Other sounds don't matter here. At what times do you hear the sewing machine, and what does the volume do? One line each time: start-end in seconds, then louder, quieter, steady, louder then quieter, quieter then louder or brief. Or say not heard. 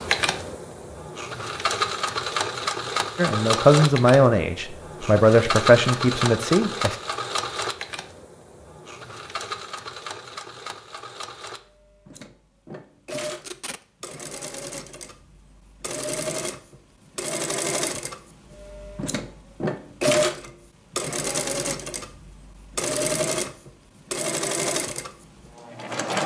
0.0-26.2 quieter then louder.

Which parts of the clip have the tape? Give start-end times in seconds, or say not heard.
13.2-13.8.